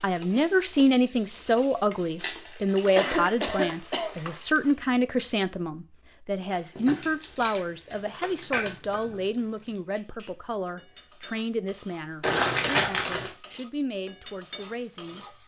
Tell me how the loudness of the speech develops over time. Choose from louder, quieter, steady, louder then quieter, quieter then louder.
quieter.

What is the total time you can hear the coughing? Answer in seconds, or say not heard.
2 s.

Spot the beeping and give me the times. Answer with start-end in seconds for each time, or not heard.
not heard.